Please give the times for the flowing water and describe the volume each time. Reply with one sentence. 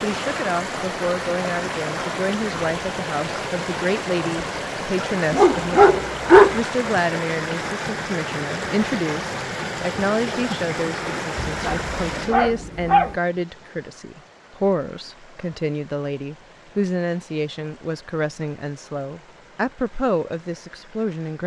The flowing water can be heard from 0.0 to 21.4 s, getting quieter.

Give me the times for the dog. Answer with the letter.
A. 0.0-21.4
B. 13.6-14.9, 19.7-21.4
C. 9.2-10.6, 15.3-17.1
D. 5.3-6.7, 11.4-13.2
D.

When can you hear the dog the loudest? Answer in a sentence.
The loudest moment of the dog is at 6 seconds.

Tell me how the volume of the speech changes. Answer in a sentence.
The volume of the speech stays about the same.